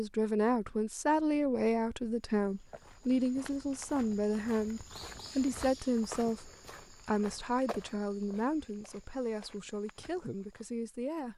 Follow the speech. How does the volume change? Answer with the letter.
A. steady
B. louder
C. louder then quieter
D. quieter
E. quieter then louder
D.